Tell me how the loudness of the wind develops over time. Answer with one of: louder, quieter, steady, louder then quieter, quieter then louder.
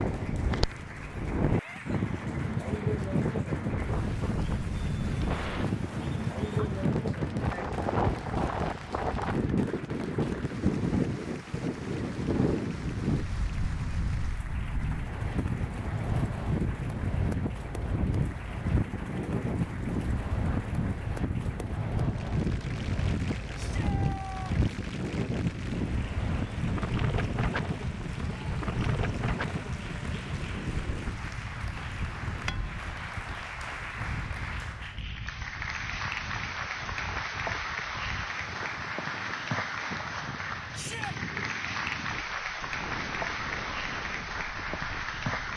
quieter.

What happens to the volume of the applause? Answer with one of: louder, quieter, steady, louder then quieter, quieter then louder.
louder.